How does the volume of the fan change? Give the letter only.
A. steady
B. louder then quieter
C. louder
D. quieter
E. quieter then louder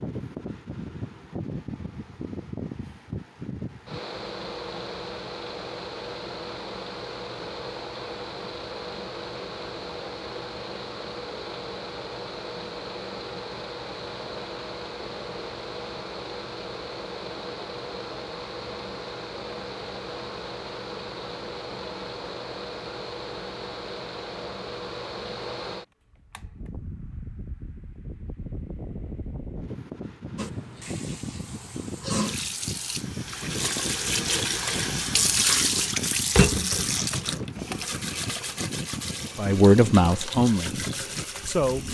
A.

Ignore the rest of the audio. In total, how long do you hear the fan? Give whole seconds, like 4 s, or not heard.
42 s.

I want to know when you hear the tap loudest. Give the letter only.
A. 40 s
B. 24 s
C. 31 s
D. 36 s
D.